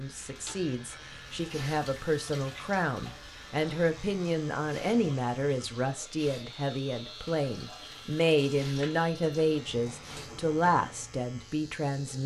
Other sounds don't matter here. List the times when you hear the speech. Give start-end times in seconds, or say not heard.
0.0-12.2.